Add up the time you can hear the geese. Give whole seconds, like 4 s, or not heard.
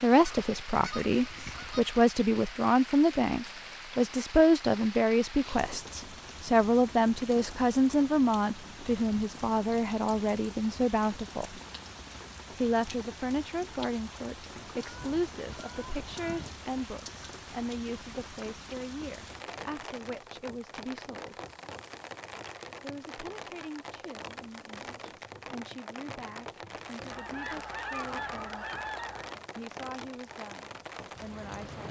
6 s.